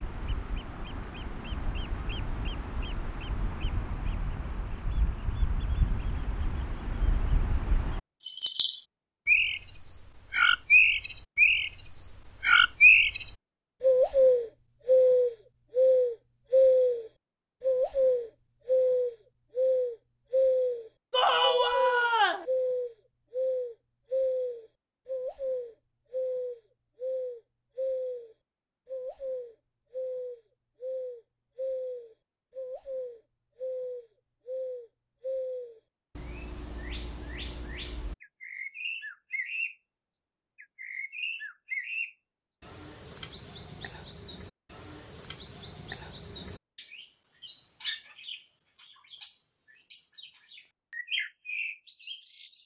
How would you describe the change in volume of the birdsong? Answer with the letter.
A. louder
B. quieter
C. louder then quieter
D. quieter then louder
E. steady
C.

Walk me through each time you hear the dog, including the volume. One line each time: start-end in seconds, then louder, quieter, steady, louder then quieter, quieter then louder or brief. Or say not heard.
not heard.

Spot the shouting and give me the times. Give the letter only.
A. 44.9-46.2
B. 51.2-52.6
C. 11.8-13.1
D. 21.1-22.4
D.